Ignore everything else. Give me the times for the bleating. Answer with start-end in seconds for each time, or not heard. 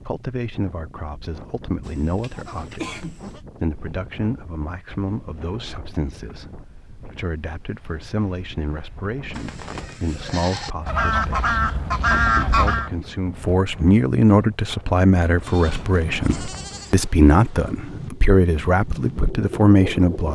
1.8-3.4, 9.3-10.8, 15.4-17.1.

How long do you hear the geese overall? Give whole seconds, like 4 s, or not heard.
2 s.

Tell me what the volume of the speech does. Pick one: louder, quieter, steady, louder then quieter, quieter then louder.
louder.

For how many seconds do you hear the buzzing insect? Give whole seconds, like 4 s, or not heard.
not heard.